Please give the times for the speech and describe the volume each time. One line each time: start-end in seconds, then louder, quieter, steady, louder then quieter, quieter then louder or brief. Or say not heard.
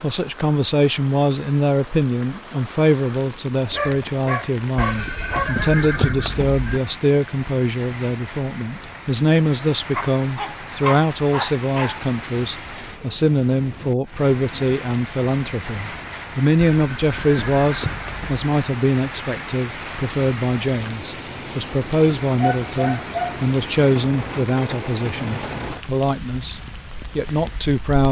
0.0-28.0 steady.